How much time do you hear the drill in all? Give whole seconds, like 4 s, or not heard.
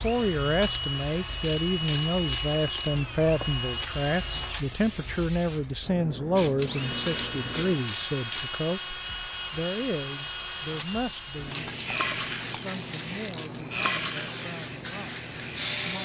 16 s.